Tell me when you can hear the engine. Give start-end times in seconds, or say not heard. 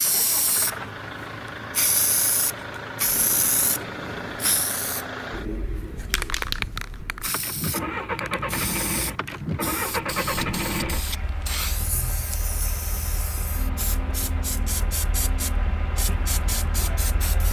0.0-17.4.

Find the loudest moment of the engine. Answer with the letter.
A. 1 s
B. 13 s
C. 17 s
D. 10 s
D.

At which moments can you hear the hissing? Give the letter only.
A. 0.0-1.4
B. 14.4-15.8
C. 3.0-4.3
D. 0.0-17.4
D.